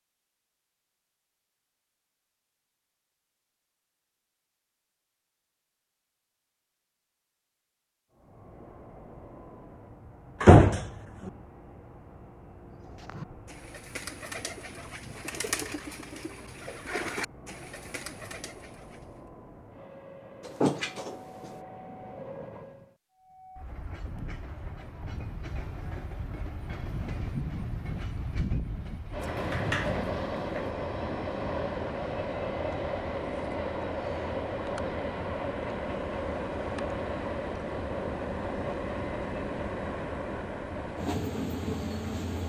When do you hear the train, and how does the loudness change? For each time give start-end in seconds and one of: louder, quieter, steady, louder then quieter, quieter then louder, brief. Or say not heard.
8.1-42.4 louder.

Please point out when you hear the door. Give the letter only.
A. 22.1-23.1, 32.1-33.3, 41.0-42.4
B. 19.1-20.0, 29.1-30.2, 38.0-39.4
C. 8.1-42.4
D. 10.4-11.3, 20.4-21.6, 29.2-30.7
D.